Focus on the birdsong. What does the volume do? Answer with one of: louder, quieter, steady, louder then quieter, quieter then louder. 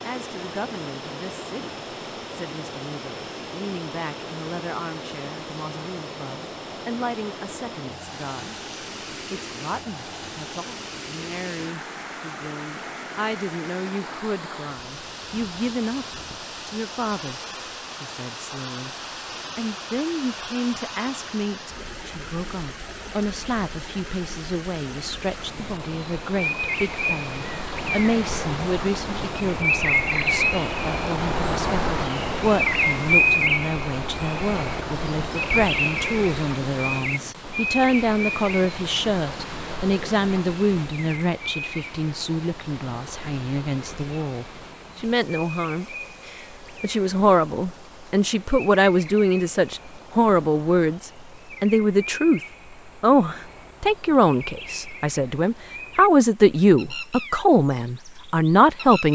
quieter.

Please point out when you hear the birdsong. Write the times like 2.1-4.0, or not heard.
25.4-59.0.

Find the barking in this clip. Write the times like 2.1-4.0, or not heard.
not heard.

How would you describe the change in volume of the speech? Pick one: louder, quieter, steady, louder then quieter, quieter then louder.
louder.